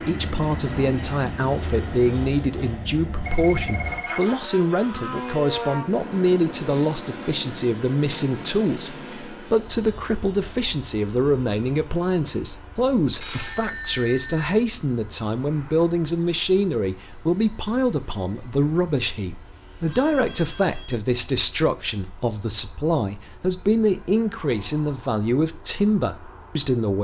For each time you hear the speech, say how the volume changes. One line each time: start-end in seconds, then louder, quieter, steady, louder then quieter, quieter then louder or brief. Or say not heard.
0.1-26.9 steady.